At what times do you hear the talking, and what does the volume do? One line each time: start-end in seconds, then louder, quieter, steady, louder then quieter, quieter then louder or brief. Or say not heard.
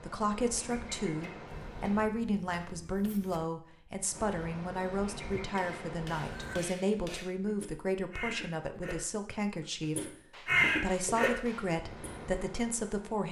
0.0-13.2 steady.